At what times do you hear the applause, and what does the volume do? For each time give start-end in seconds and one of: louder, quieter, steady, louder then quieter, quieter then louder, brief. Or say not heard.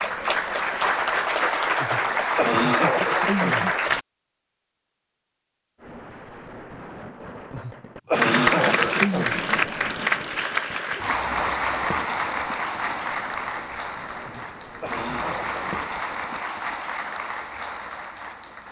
0.0-4.0 steady
8.1-18.6 quieter.